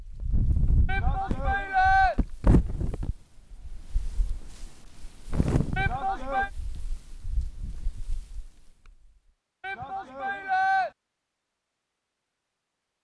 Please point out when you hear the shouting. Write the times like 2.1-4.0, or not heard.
0.8-2.1, 5.8-6.5, 9.6-10.9.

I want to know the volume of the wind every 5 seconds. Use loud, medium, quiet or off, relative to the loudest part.
loud, loud, off.